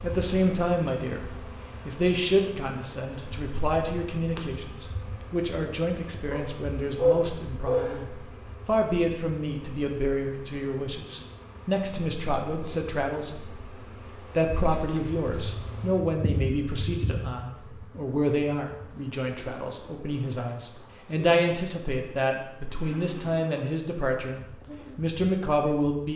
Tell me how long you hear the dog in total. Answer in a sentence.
The dog can be heard for 2 seconds in total.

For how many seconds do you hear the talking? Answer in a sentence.
You can hear the talking for 25 seconds altogether.